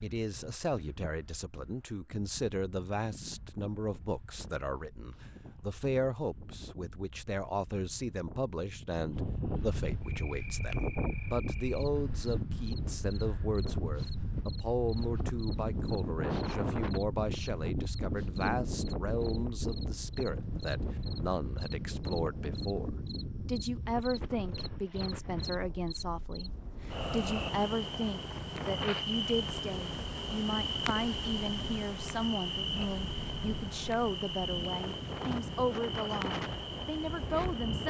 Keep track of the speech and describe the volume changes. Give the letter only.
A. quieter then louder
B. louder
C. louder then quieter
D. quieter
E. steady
E.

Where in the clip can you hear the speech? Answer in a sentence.
You can hear the speech from 0.0 to 37.8 s.